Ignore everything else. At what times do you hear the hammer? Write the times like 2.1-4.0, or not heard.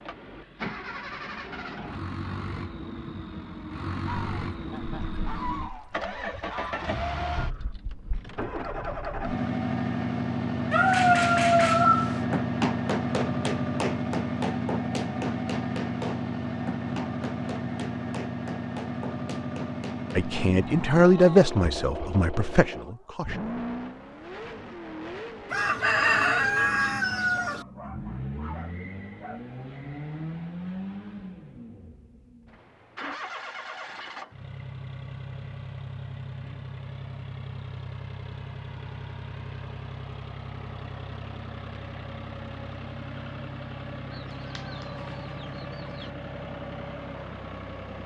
10.8-20.5.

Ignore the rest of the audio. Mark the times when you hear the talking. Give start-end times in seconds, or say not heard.
20.1-23.6.